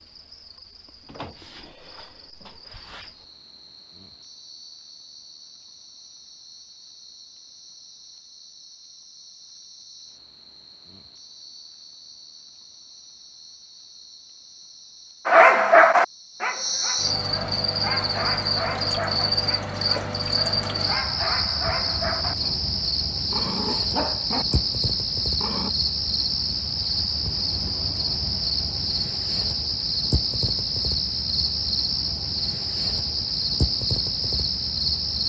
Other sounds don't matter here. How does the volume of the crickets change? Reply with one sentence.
The loudness of the crickets goes up.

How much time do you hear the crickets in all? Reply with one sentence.
The crickets can be heard for 35 seconds in total.